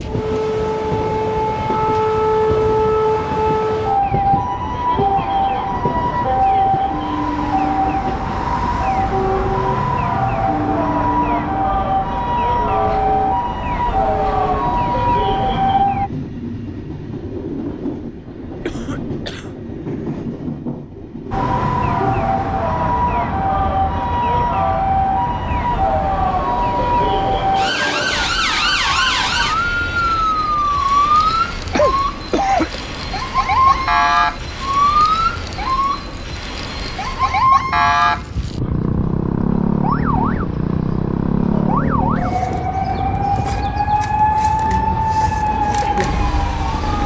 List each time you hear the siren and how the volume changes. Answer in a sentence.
The siren can be heard from 0.0 to 16.1 s, at a steady volume; and from 21.3 to 47.0 s, at a steady volume.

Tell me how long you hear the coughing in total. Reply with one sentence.
The coughing can be heard for 2 seconds in total.